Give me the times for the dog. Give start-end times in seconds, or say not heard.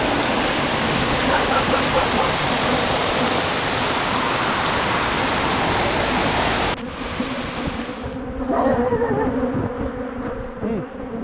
1.2-2.4, 8.3-9.7.